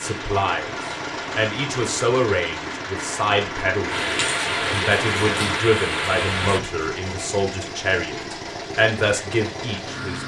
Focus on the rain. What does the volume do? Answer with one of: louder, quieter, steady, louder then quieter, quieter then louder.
louder.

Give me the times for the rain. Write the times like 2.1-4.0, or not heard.
0.0-6.6.